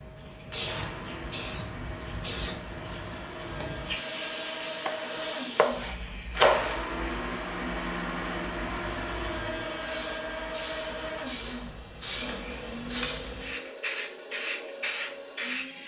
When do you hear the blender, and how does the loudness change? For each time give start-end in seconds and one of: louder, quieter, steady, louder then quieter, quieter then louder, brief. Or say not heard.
0.0-15.8 louder then quieter.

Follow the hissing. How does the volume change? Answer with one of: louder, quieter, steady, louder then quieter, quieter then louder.
quieter then louder.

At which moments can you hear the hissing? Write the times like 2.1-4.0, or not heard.
0.0-15.8.